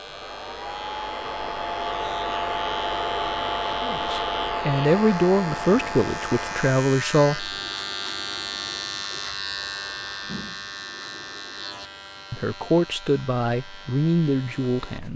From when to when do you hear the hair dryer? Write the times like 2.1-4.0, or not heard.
0.0-6.8.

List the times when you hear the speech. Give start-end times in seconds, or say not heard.
3.8-7.5, 12.3-15.1.